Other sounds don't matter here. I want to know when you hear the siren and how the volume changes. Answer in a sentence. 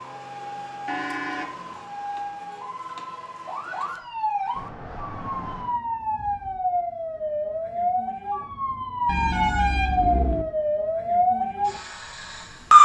You can hear the siren from 0.0 to 12.7 s, getting louder.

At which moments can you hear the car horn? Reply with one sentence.
You can hear the car horn from 0.8 to 1.7 s, from 4.5 to 5.8 s and from 9.1 to 10.4 s.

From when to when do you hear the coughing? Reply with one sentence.
The coughing can't be heard in this clip.